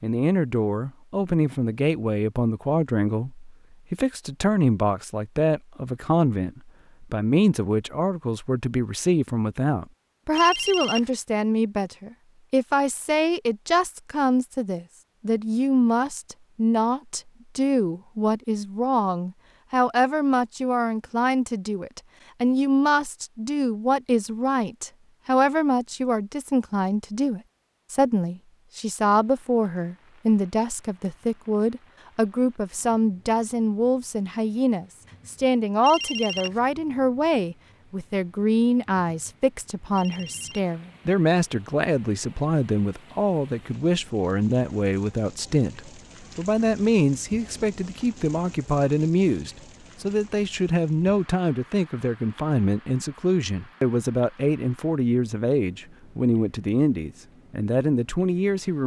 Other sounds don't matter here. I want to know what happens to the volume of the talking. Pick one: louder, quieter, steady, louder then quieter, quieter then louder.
steady.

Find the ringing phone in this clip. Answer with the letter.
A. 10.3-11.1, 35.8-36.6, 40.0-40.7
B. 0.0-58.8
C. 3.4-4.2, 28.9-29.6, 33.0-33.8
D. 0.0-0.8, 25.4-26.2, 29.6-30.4
A.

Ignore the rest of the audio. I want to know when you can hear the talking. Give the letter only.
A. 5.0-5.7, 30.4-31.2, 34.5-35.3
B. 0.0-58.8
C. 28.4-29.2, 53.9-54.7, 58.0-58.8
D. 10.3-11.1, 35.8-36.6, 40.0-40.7
B.